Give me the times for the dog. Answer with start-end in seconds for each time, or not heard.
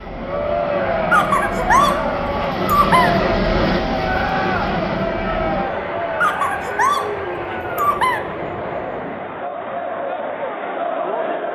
1.1-3.1, 6.2-8.2.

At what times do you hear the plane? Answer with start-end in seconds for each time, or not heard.
0.0-9.4.